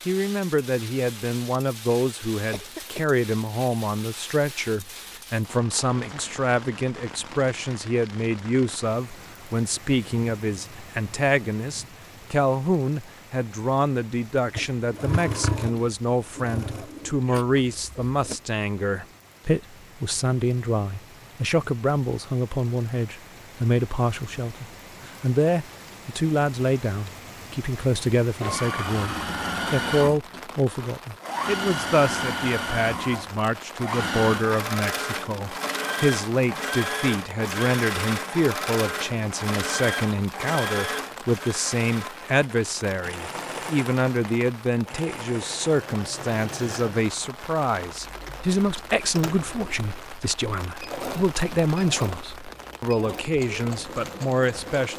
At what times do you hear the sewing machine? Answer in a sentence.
You can hear the sewing machine from 14.6 to 18.4 s and from 28.4 to 54.9 s.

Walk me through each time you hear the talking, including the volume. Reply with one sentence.
The talking can be heard from 0.1 to 54.9 s, at a steady volume.